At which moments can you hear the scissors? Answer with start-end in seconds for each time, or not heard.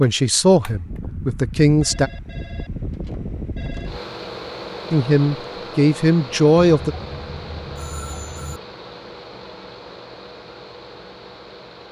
not heard.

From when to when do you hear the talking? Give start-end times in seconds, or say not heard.
0.0-2.1, 4.9-7.0.